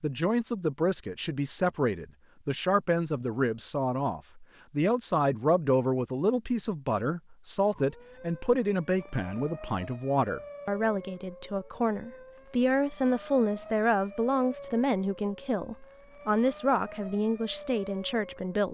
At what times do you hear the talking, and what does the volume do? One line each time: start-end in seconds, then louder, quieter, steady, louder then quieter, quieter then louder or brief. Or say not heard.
0.0-18.6 steady.